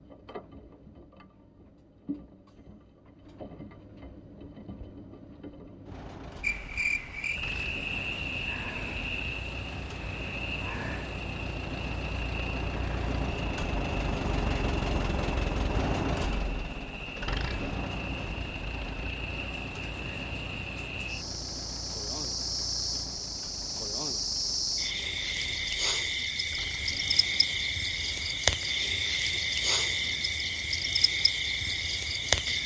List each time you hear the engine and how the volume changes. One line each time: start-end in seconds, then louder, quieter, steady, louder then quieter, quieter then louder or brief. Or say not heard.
0.0-32.6 louder then quieter.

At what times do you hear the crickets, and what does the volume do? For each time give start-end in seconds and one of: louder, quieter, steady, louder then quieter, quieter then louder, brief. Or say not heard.
6.4-32.6 quieter then louder.